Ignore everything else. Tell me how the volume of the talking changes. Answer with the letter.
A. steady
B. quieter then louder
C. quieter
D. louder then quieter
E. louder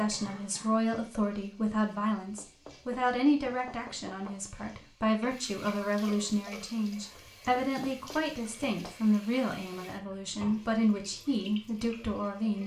A.